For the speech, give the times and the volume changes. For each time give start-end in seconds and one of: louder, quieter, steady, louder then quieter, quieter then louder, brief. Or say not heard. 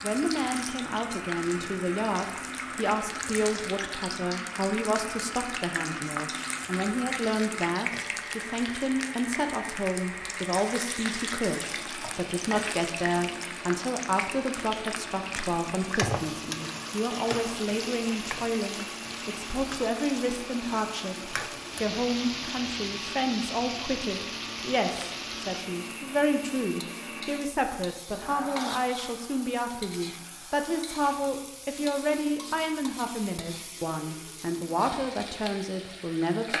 0.0-36.5 steady.